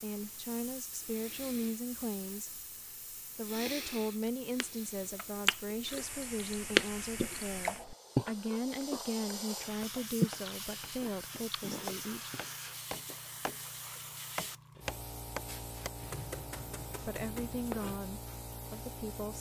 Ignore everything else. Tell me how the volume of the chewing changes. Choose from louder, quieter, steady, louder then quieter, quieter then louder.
louder then quieter.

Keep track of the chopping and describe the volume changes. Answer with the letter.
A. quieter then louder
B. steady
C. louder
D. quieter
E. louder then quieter
E.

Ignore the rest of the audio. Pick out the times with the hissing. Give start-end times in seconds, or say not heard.
0.0-19.3.